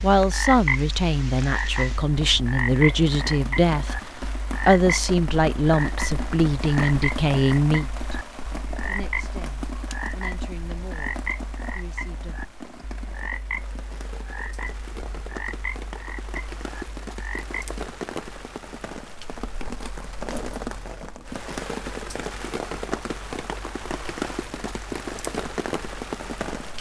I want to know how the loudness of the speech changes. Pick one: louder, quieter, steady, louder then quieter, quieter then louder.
quieter.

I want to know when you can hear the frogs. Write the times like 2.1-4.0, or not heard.
0.0-17.8.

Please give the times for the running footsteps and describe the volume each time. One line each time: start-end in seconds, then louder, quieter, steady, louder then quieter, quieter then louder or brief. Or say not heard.
not heard.